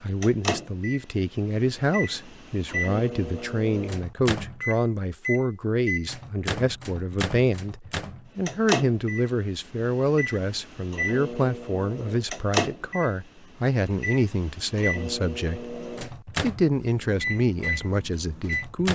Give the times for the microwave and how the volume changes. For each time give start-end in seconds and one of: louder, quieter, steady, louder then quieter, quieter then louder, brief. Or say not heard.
0.2-18.8 steady.